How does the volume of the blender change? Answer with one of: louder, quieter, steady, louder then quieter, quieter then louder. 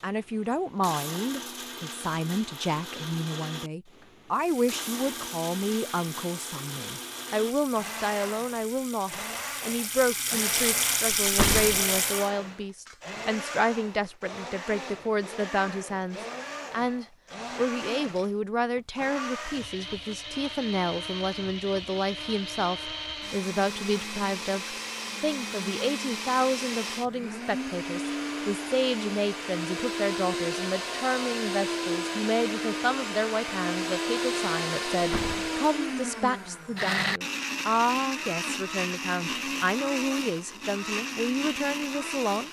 louder.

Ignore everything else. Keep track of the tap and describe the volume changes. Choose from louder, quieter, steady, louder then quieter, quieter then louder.
louder.